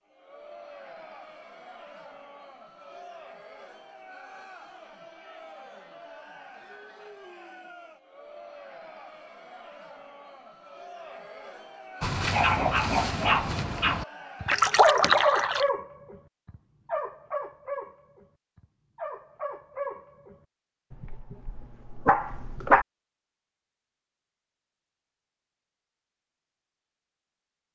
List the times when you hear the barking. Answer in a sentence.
You can hear the barking from 12.0 to 22.9 s.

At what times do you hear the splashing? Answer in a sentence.
The splashing can be heard from 14.4 to 15.7 s.